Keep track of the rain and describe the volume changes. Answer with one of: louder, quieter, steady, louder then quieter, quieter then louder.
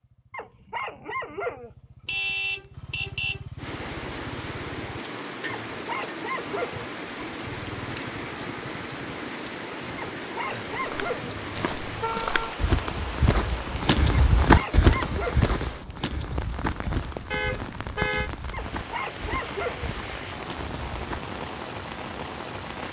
steady.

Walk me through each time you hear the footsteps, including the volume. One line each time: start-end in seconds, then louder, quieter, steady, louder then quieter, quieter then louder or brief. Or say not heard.
10.7-21.2 louder then quieter.